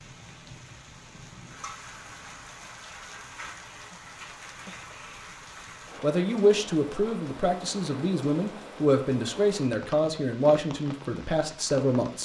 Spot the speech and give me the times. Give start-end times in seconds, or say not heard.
6.0-12.2.